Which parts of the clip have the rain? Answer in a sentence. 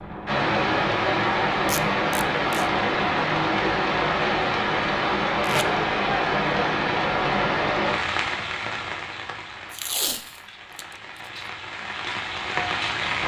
You can hear the rain from 0.0 to 13.2 s.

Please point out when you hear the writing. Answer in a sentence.
The writing can't be heard in this clip.